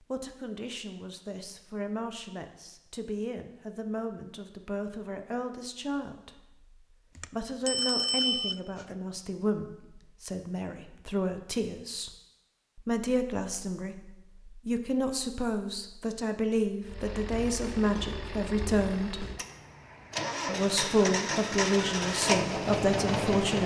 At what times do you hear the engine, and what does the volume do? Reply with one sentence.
You can hear the engine from 16.8 to 23.6 s, getting louder.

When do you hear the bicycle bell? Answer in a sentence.
You can hear the bicycle bell from 7.2 to 8.8 s.